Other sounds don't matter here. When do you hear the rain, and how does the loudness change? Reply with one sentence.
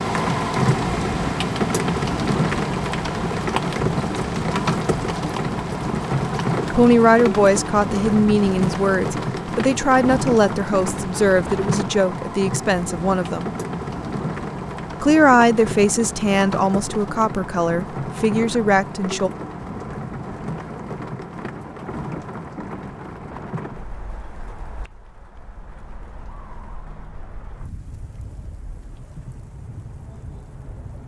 You can hear the rain from 0.0 to 31.0 s, getting quieter.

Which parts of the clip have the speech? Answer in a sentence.
The speech can be heard from 6.7 to 13.6 s and from 15.0 to 19.3 s.